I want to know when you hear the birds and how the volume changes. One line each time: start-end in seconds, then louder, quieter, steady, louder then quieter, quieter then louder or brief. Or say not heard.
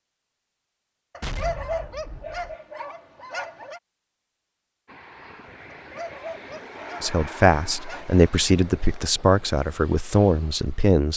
not heard.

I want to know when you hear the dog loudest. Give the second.
2 s.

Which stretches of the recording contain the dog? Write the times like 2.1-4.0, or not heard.
1.1-3.8, 5.8-8.2.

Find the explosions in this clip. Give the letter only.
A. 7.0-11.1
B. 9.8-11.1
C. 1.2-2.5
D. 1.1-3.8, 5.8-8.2
C.